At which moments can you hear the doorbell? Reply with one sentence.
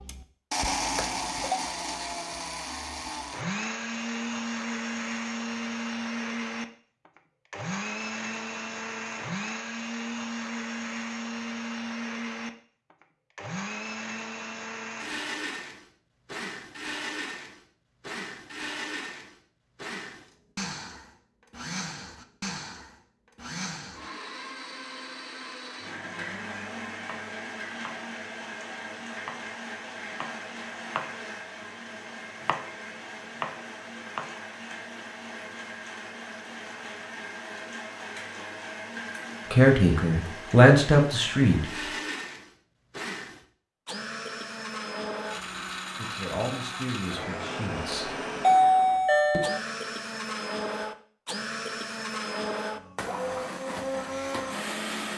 The doorbell can be heard from 0.7 to 1.6 s and from 47.9 to 49.6 s.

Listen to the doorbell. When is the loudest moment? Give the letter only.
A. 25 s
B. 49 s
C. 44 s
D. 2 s
B.